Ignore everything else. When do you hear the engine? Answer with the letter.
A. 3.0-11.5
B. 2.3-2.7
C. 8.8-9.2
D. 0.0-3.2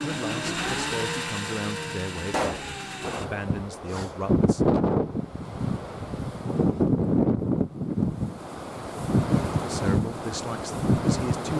D.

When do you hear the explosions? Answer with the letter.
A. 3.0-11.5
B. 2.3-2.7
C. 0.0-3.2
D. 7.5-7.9
B.